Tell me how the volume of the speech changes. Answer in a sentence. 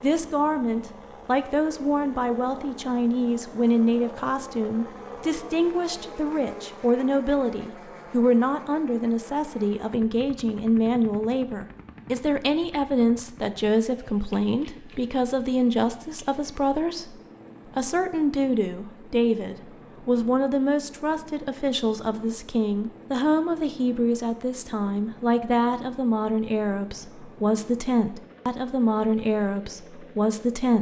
The loudness of the speech stays about the same.